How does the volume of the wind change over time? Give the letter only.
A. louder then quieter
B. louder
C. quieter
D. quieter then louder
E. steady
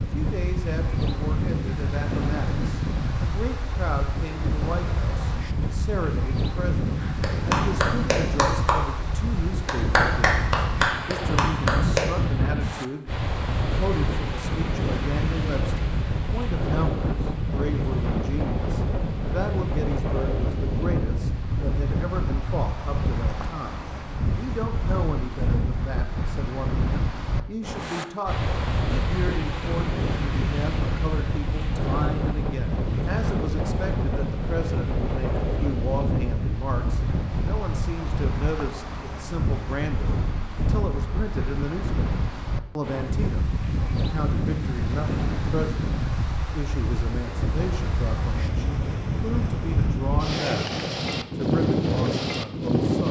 E.